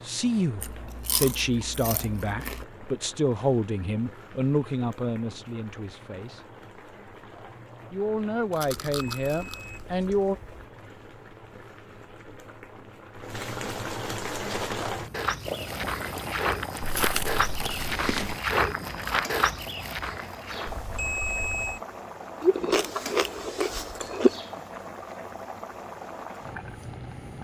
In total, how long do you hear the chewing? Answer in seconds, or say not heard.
7 s.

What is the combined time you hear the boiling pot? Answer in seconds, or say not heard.
27 s.